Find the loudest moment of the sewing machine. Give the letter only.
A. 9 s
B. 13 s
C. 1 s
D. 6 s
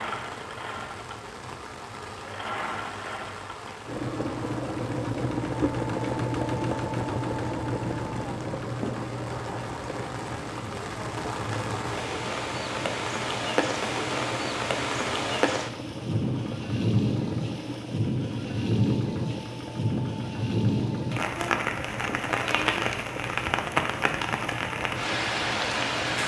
D.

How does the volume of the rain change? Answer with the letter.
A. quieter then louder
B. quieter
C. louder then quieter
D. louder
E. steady
D.